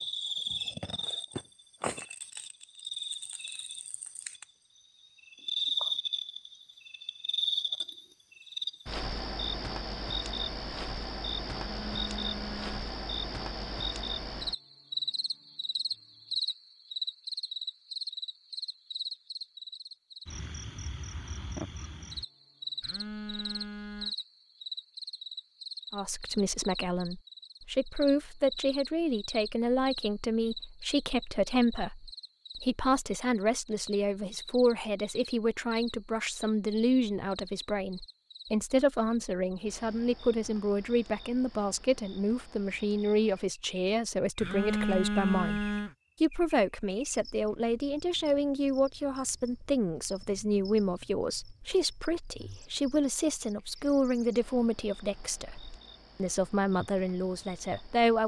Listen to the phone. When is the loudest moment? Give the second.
45 s.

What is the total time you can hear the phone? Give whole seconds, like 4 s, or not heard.
4 s.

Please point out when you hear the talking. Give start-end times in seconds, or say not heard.
25.9-58.2.